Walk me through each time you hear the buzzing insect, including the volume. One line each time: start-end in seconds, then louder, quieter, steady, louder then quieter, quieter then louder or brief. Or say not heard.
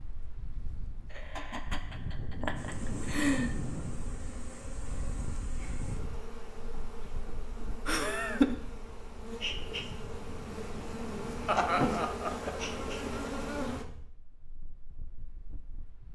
2.5-13.8 louder.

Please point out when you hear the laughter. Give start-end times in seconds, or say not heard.
1.1-3.5, 7.8-8.6, 11.4-12.6.